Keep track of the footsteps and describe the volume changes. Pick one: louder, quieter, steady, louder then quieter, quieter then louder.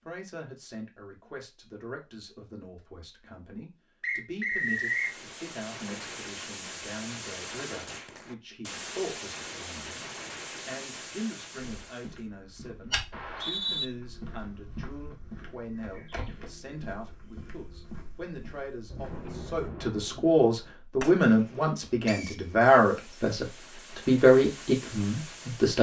quieter.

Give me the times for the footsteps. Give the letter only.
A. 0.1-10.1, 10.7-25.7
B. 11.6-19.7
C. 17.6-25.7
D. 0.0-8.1
B.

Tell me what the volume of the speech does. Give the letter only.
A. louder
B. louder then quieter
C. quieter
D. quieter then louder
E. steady
A.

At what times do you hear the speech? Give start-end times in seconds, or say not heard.
0.1-10.1, 10.7-25.7.